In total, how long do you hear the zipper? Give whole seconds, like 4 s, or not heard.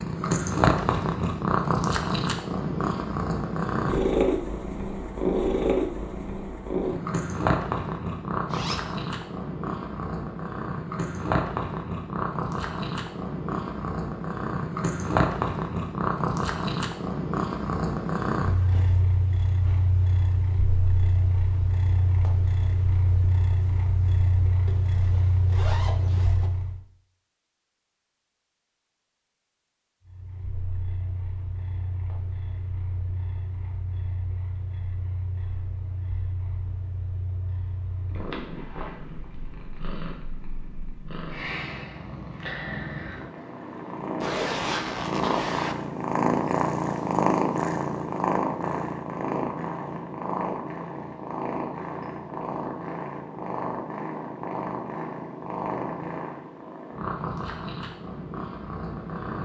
4 s.